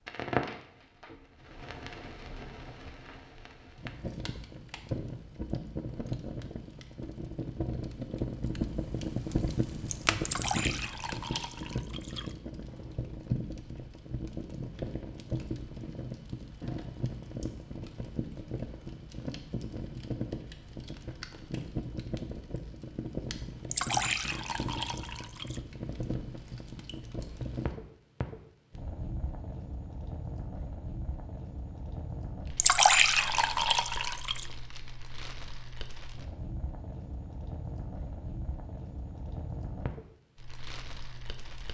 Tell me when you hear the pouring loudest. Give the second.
33 s.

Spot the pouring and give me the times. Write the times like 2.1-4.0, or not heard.
10.2-12.3, 23.7-25.6, 32.5-34.5.